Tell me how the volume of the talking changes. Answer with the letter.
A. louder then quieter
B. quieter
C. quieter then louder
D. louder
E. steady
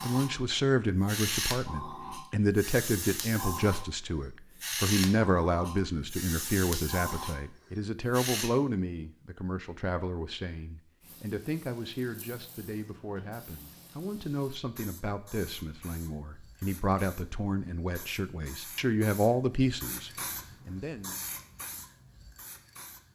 C.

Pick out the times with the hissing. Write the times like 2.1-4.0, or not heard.
0.0-8.5, 11.0-23.1.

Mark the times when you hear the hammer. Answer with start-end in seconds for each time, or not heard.
not heard.